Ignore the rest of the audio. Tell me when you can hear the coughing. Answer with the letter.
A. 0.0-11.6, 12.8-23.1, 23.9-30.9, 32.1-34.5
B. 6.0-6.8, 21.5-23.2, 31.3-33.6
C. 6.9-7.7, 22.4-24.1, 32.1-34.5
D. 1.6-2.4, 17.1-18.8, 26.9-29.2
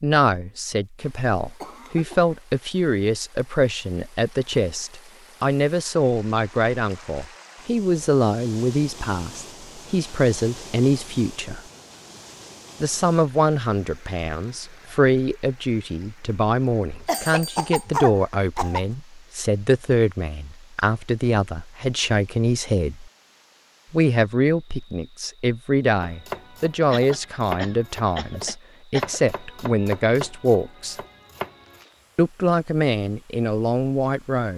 D.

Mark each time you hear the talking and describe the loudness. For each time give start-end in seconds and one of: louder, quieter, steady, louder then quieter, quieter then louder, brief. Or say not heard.
0.0-11.6 steady
12.8-23.1 steady
23.9-30.9 steady
32.1-34.5 brief.